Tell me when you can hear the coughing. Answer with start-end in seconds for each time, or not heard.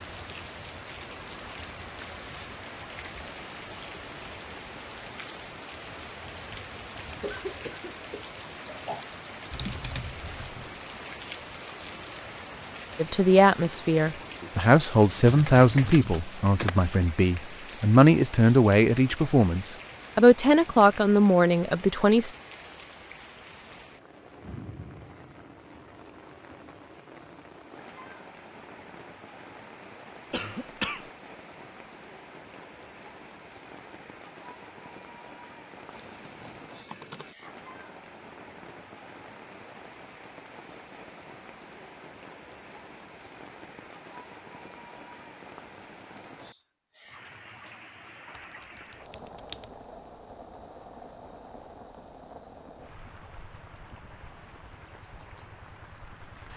7.2-9.1, 30.3-31.1.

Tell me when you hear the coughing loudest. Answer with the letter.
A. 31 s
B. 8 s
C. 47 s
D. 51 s
A.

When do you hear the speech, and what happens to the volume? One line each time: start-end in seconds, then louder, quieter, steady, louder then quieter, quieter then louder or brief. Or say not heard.
12.9-22.3 steady.